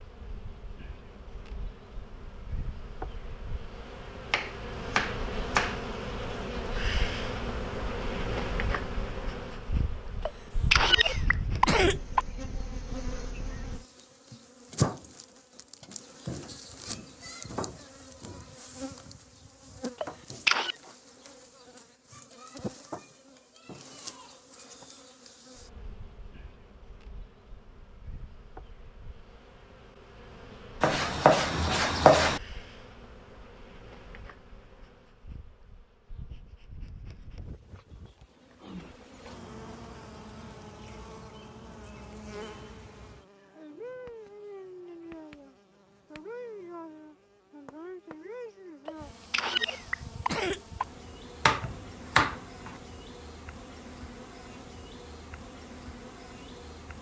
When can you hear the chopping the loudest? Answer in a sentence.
The volume of the chopping peaks at 32 seconds.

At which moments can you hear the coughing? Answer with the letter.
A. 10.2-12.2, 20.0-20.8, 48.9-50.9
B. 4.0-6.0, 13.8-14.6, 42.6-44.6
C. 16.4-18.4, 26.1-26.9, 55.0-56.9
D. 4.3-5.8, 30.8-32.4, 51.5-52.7
A.